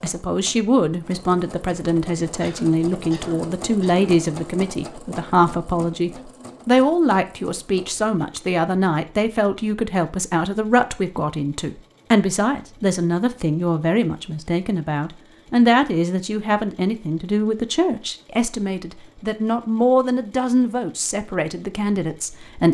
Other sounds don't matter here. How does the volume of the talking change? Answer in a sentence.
The loudness of the talking stays about the same.